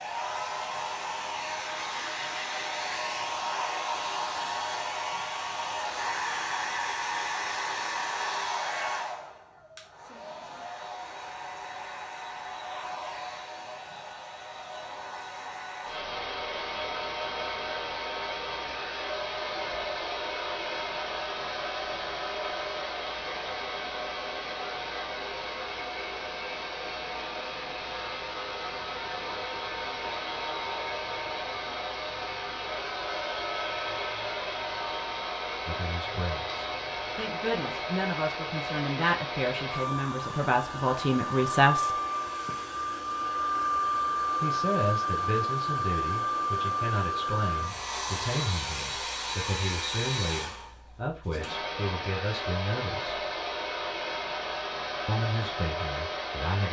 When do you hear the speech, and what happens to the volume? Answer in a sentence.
You can hear the speech from 35.6 to 42.0 s, getting louder; from 44.4 to 53.2 s, at a steady volume; and briefly from 55.0 to 56.6 s.